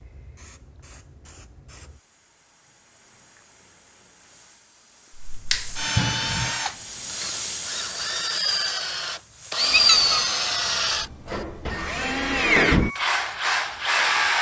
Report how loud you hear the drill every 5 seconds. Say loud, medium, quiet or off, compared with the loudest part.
off, loud, loud.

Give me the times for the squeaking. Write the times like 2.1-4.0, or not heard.
9.7-10.2.